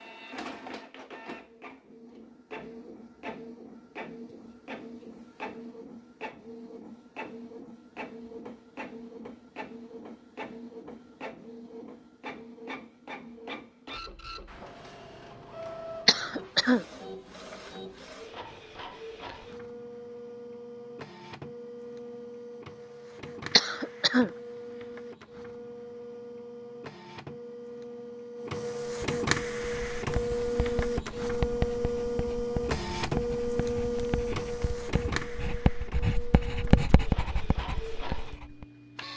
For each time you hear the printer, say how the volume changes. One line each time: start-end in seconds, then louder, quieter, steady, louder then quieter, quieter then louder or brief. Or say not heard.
0.0-39.1 louder.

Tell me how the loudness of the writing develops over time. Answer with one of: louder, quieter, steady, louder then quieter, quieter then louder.
quieter then louder.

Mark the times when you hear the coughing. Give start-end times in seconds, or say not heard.
16.1-16.9, 23.6-24.3.